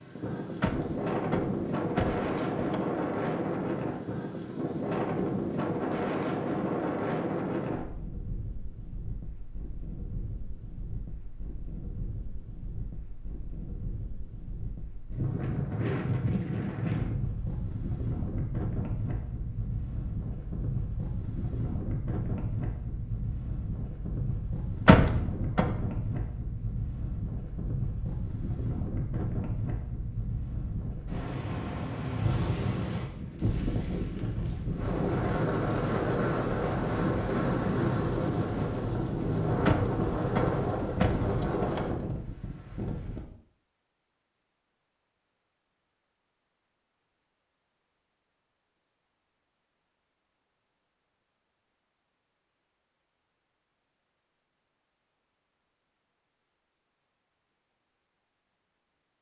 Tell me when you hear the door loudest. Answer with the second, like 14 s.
25 s.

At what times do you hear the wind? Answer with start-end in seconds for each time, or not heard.
0.0-43.2.